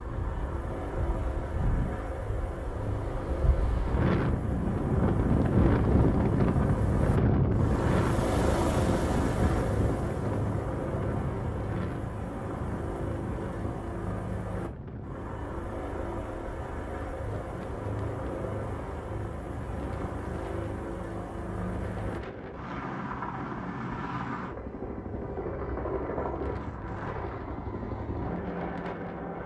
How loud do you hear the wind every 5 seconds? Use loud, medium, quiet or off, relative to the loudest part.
medium, loud, medium, quiet, quiet, quiet.